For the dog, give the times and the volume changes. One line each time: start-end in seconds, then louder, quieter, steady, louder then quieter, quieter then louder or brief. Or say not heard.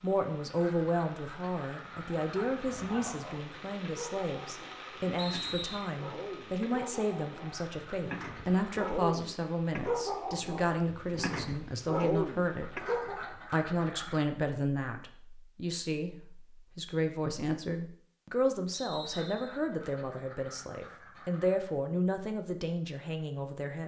2.2-13.3 louder.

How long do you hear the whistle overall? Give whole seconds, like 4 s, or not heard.
2 s.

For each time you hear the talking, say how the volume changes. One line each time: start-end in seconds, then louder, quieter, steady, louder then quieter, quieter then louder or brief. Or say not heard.
0.0-23.8 steady.